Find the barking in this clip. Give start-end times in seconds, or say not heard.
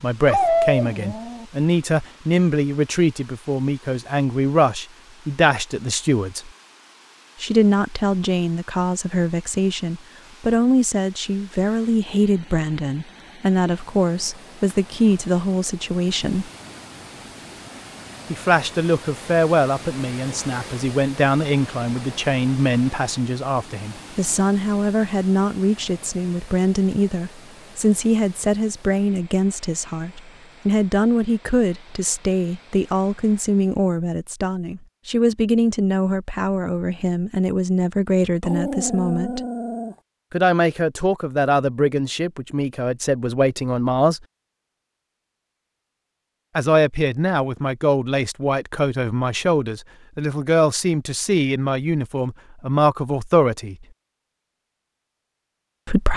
0.2-1.4, 38.4-40.0.